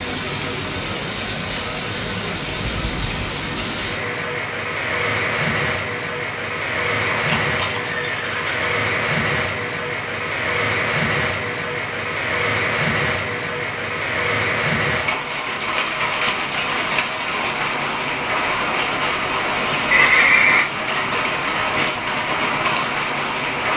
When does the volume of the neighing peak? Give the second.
20 s.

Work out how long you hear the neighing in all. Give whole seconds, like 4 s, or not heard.
2 s.